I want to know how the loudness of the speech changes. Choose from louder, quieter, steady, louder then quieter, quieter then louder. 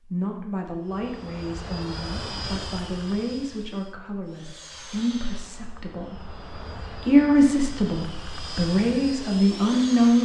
louder.